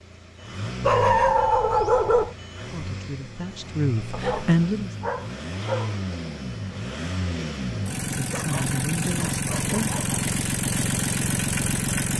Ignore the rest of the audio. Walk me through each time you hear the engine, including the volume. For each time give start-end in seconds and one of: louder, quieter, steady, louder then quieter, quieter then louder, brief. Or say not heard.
0.0-12.1 louder.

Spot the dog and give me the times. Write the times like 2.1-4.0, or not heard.
0.8-2.4, 4.1-6.0, 8.2-10.2.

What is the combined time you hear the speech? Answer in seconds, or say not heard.
4 s.